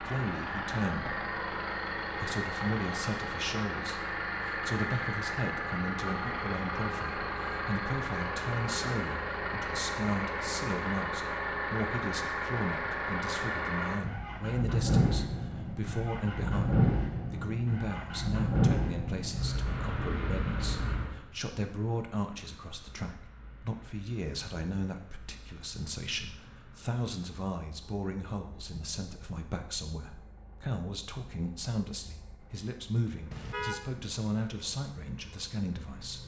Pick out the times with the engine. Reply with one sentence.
You can hear the engine from 0.0 to 36.2 s.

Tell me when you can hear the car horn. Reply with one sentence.
The car horn can be heard from 33.3 to 33.9 s.